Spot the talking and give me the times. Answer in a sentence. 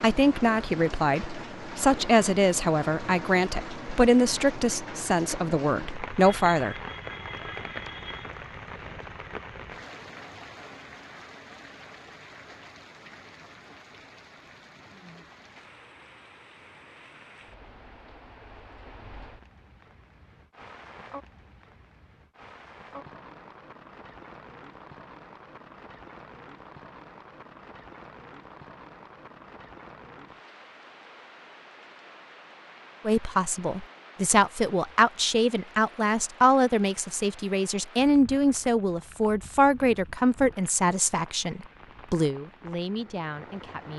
The talking can be heard from 0.0 to 6.8 s and from 33.0 to 43.9 s.